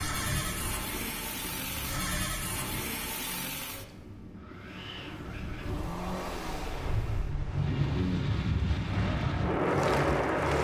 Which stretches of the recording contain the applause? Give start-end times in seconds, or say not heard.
8.7-10.5.